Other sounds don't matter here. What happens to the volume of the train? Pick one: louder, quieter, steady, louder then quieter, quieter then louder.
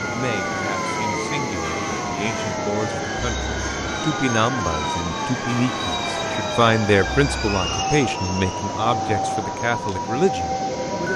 steady.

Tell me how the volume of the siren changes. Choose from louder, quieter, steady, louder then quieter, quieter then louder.
steady.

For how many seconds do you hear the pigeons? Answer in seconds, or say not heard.
not heard.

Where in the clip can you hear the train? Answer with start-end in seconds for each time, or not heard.
0.0-11.1.